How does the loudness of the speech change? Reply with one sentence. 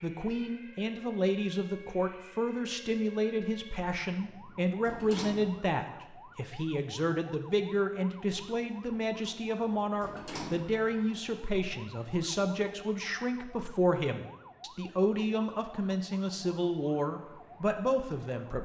The loudness of the speech stays about the same.